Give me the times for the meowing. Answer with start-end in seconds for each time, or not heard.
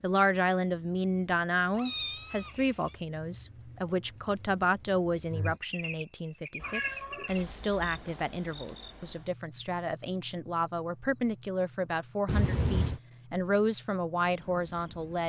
1.8-3.0, 6.6-8.0, 12.2-13.0.